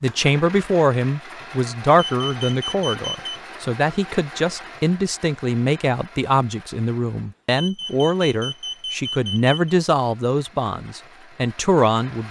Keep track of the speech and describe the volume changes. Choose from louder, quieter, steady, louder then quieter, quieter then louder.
steady.